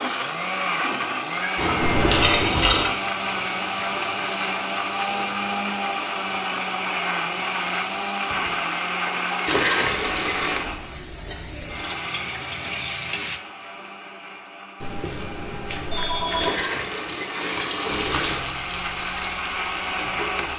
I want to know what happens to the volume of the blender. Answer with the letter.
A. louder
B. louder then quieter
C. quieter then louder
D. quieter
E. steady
C.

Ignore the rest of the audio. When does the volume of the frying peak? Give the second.
13 s.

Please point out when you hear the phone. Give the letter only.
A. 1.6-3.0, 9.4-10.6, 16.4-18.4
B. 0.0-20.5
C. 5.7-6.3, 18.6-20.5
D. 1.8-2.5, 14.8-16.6
D.